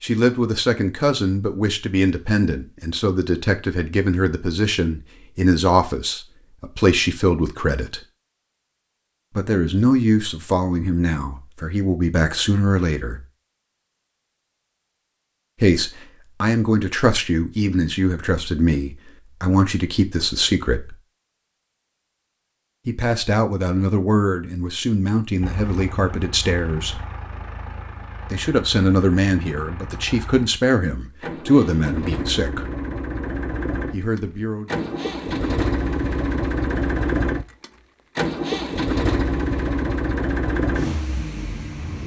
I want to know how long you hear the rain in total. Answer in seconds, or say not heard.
not heard.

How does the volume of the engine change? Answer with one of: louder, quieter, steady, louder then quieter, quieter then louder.
louder.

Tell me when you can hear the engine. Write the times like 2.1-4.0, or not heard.
25.4-42.0.